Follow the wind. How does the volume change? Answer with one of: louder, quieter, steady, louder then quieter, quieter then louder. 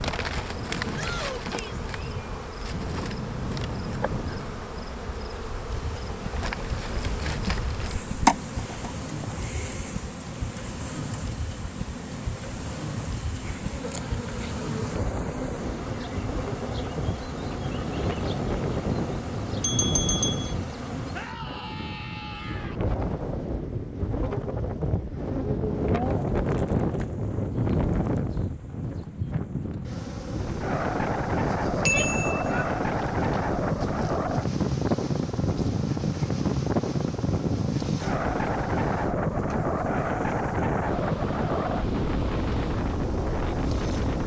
louder.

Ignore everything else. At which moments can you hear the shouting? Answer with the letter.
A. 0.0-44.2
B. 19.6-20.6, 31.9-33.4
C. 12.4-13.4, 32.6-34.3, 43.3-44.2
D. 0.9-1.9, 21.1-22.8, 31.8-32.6
D.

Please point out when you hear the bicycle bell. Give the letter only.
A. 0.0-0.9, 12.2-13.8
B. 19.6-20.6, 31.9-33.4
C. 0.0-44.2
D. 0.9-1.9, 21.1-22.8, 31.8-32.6
B.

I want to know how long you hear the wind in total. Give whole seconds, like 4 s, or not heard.
44 s.